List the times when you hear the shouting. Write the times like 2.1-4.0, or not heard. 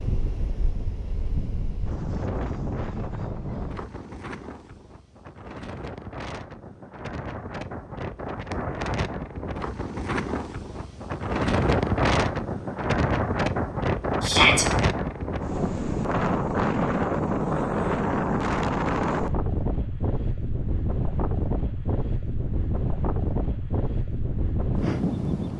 14.2-14.7.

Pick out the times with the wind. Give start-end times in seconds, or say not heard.
0.0-25.5.